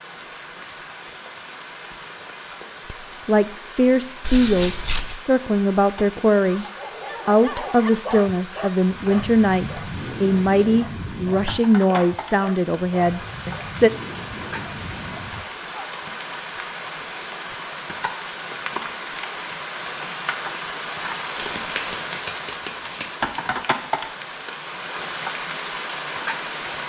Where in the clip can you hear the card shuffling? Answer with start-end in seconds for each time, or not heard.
4.2-5.2, 21.4-23.1.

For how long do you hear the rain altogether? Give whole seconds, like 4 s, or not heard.
27 s.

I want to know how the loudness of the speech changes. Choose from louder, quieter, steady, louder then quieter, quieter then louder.
steady.